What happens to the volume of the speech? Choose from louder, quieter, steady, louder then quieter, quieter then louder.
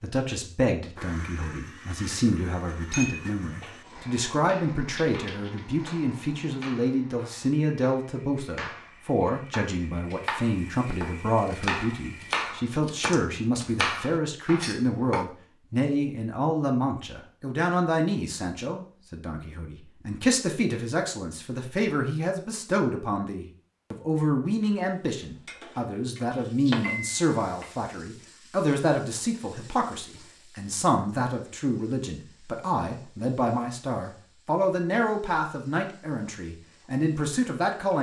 steady.